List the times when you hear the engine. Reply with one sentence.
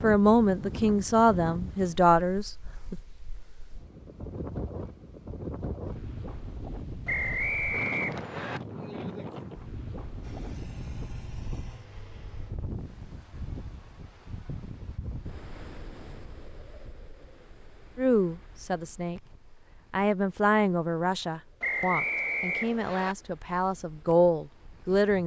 You can hear the engine from 10.2 to 12.6 s.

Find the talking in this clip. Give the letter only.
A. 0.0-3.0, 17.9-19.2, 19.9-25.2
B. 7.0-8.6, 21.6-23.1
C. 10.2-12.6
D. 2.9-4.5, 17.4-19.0
A.